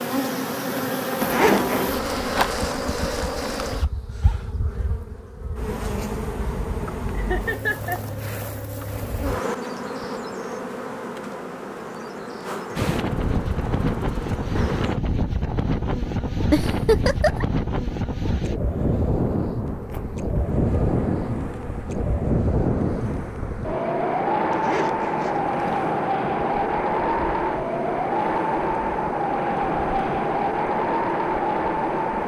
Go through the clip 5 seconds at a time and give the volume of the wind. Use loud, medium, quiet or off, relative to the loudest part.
off, off, loud, loud, loud, loud, loud.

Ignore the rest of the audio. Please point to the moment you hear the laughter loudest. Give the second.
17 s.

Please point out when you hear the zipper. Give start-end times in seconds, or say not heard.
1.2-1.9, 24.5-25.9.